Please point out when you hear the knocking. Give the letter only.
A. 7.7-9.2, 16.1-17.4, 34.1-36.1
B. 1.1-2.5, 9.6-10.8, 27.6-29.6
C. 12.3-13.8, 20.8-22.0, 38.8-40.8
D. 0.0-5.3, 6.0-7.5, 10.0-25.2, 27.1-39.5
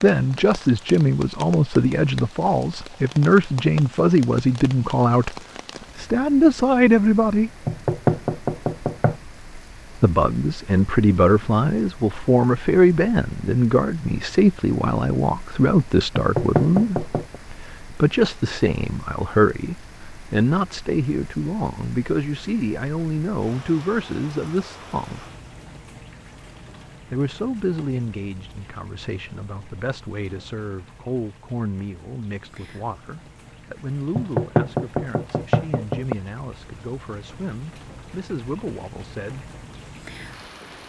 A.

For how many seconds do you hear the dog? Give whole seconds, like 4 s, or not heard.
not heard.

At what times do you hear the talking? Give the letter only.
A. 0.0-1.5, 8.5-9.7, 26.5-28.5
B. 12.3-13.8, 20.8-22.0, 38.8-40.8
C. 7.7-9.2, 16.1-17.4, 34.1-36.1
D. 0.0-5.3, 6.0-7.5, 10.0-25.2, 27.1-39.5
D.